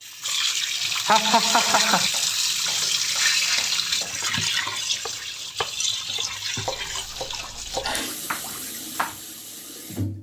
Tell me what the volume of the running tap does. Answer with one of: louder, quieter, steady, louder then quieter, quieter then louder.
quieter.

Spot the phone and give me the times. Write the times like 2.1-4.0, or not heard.
not heard.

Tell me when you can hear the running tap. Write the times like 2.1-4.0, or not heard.
0.0-10.1.